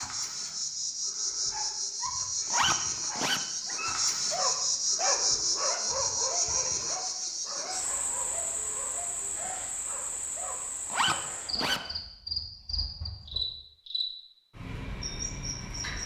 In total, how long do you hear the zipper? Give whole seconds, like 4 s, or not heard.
2 s.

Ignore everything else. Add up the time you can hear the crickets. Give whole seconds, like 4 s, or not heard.
16 s.